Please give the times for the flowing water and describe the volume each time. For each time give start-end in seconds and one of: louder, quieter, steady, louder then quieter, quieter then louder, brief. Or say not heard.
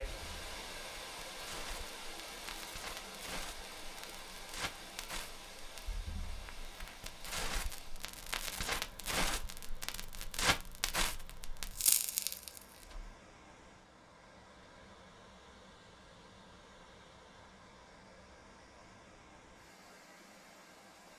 0.0-21.1 quieter.